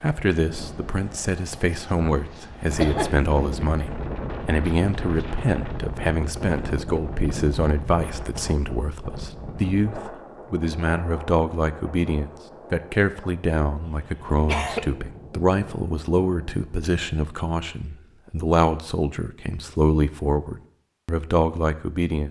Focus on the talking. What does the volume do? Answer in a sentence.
The volume of the talking stays about the same.